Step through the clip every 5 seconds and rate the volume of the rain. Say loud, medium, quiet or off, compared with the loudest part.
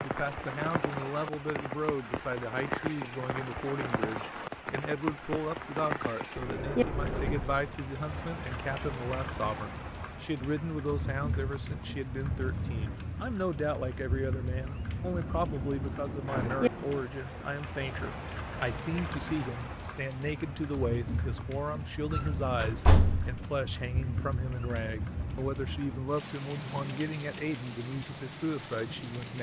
loud, loud, loud, loud, loud, medium.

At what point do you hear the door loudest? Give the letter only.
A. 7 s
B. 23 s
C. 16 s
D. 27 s
B.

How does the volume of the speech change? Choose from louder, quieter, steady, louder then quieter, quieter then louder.
steady.